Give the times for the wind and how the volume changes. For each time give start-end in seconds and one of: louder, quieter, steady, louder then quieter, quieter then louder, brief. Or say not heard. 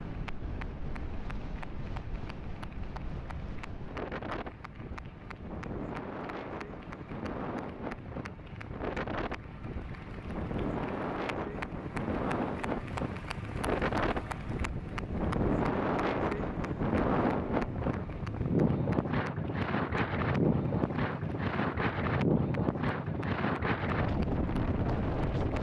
0.0-25.5 louder.